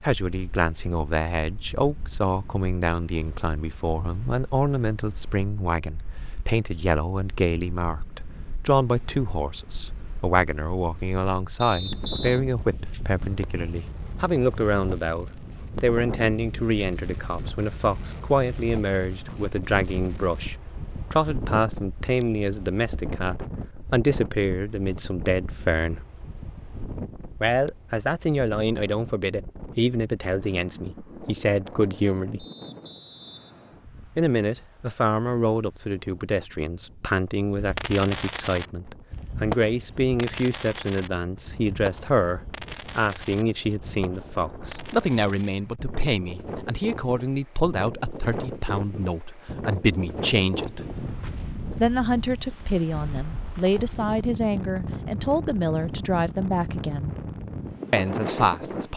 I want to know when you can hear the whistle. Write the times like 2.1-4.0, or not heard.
11.6-12.4, 32.4-33.9.